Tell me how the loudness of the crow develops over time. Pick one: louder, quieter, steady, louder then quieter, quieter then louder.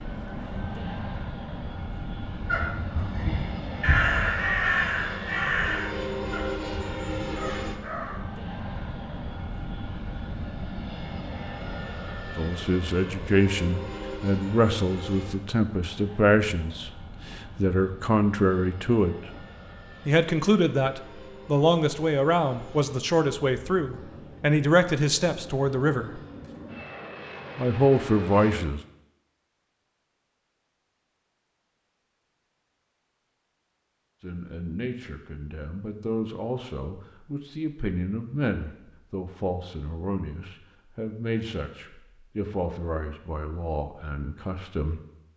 louder then quieter.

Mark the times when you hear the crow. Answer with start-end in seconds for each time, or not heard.
2.4-8.2.